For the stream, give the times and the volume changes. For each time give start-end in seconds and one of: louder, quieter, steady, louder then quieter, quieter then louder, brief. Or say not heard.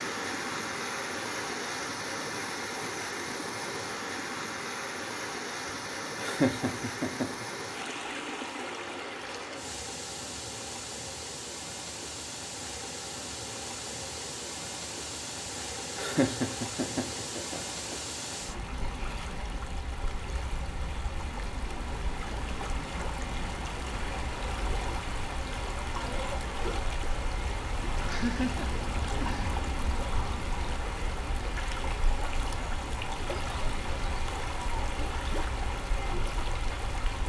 0.0-37.2 steady.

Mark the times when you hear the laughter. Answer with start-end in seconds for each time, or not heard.
6.2-7.5, 15.9-17.9, 28.1-29.5.